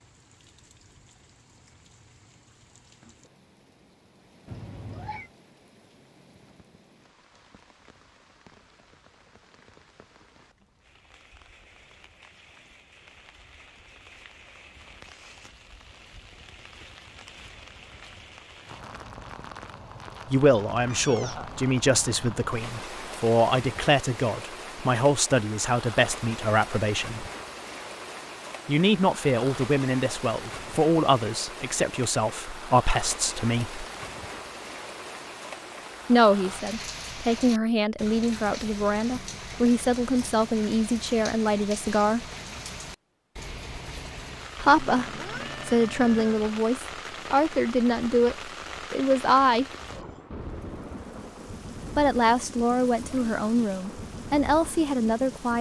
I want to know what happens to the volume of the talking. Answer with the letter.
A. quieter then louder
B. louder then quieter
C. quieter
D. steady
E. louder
D.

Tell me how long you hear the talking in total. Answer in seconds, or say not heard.
27 s.